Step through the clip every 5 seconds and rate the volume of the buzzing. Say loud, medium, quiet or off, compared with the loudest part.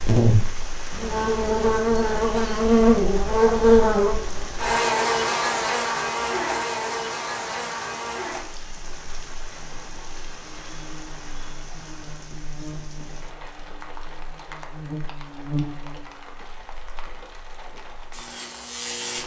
loud, medium, quiet, quiet.